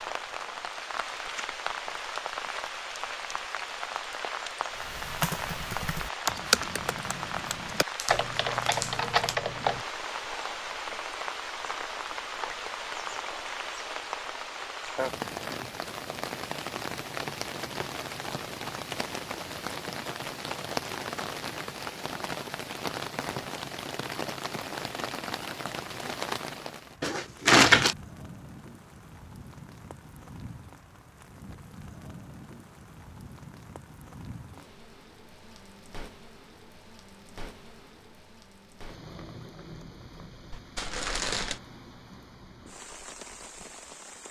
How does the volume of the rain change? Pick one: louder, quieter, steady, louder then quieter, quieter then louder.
quieter.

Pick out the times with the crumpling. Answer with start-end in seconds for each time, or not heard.
8.0-9.3, 27.0-27.9, 40.5-41.6.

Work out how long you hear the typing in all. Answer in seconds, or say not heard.
5 s.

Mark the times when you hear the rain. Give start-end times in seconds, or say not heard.
0.0-44.2.